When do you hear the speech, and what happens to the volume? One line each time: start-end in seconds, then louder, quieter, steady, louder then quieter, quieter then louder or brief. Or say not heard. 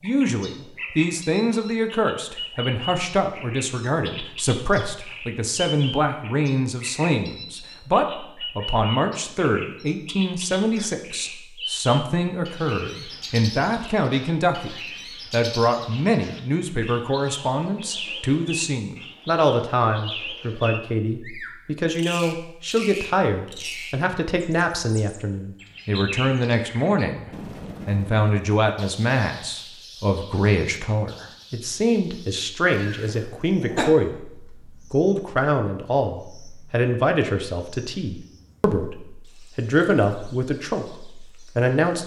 0.0-42.0 steady.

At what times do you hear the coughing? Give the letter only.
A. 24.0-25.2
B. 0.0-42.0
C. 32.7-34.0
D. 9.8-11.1
C.